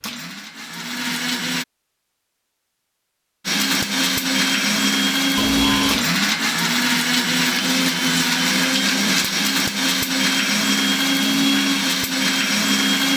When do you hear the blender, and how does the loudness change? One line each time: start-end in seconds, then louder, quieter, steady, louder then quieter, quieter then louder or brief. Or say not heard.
0.0-1.6 brief
3.5-13.1 steady.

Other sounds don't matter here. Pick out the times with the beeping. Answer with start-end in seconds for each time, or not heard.
5.3-6.2.